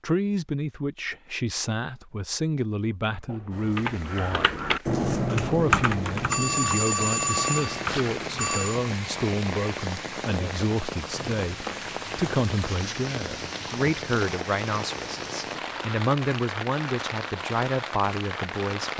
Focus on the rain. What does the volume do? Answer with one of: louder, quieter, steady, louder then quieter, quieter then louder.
louder.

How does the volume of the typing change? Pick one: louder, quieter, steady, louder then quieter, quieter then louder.
louder then quieter.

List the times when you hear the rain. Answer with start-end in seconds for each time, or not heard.
3.5-18.9.